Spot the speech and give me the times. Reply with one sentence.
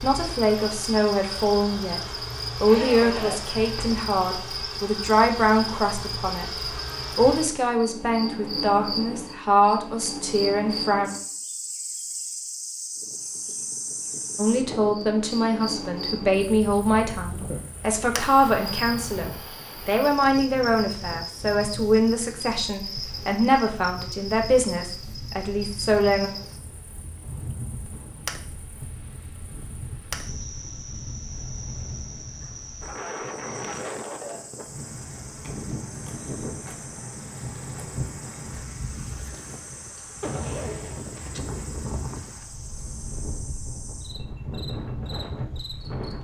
The speech can be heard from 0.0 to 2.0 s, from 2.6 to 11.1 s and from 14.3 to 26.3 s.